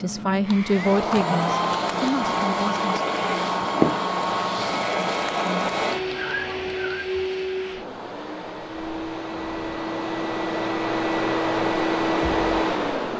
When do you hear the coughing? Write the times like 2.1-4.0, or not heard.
not heard.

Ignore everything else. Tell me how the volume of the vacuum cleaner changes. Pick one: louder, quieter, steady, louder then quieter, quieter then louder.
quieter then louder.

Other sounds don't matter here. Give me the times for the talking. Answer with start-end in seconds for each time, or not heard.
0.0-2.9.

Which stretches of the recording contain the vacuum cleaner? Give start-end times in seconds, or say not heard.
0.0-13.1.